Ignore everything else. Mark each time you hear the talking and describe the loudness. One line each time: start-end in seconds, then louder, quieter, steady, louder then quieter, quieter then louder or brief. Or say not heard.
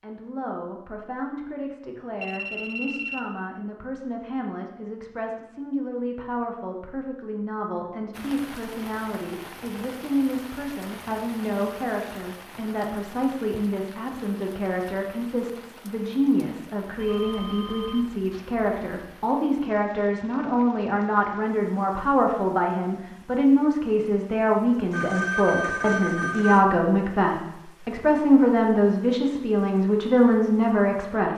0.0-31.3 louder.